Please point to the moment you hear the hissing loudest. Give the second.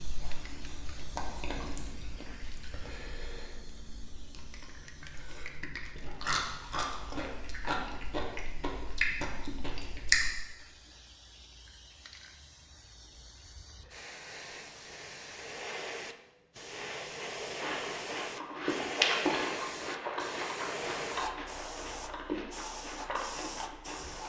19 s.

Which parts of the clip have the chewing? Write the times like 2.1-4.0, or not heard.
0.0-10.3, 17.6-24.2.